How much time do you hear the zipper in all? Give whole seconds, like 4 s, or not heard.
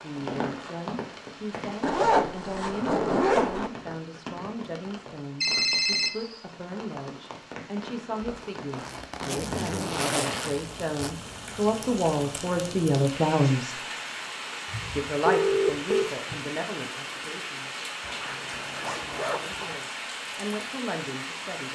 6 s.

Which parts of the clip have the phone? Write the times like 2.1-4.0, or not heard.
5.4-6.4, 14.7-16.4.